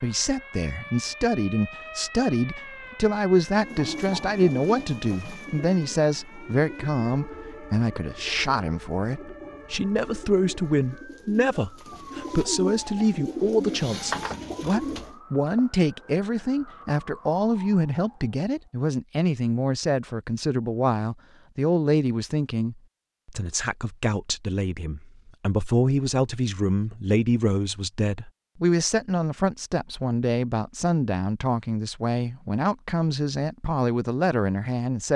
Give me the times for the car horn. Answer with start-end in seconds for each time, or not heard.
not heard.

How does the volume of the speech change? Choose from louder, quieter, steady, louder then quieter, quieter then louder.
steady.